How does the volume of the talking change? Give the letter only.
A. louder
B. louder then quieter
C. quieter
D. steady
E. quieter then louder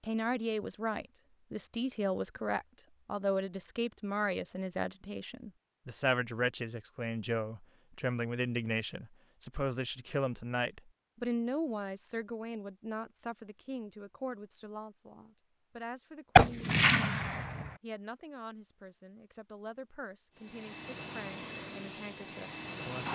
C.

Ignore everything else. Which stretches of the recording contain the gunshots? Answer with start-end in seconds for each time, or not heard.
16.4-17.7.